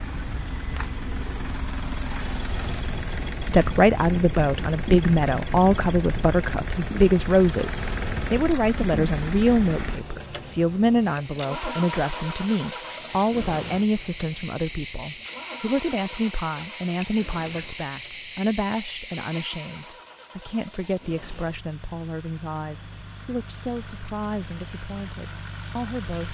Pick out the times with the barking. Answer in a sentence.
The barking can't be heard in this clip.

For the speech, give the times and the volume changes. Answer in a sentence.
You can hear the speech from 3.5 to 26.2 s, getting quieter.